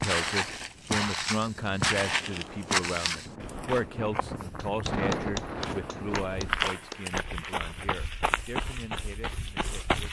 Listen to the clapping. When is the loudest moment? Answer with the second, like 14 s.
5 s.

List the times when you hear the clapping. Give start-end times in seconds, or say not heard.
4.5-7.2.